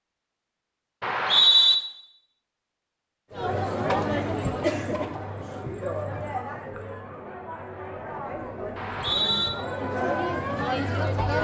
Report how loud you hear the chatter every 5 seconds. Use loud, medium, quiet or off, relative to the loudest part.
loud, medium, loud.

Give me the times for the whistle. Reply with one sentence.
You can hear the whistle from 1.0 to 1.8 s and from 8.8 to 9.5 s.